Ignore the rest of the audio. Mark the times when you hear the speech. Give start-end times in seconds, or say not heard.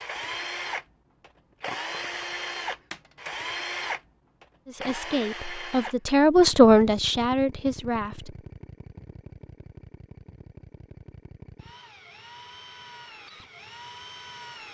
4.7-8.3.